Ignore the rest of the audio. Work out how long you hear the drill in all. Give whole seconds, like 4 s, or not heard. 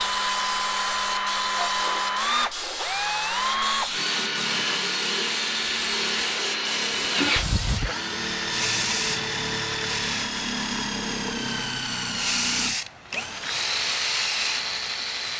15 s.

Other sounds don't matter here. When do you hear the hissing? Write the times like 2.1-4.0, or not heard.
0.0-10.3, 12.1-15.3.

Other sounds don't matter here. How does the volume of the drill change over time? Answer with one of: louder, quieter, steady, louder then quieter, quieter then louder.
steady.